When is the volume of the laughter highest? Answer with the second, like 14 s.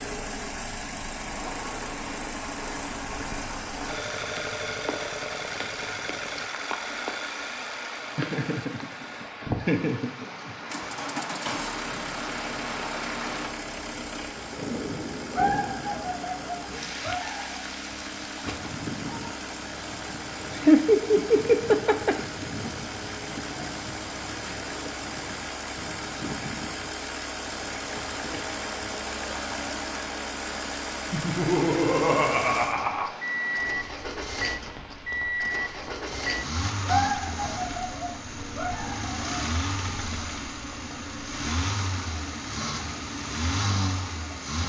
21 s.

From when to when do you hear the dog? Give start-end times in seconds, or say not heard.
15.3-17.6, 36.9-39.6.